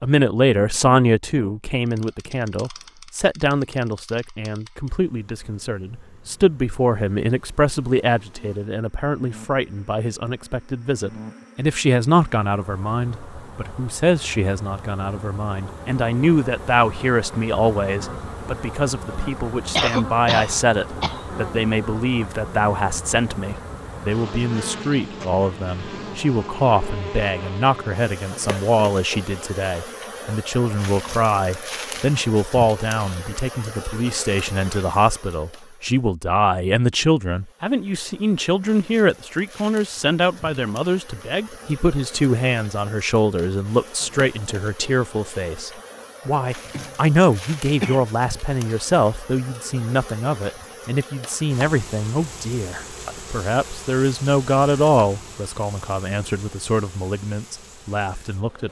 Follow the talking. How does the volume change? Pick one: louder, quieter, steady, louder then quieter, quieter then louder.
steady.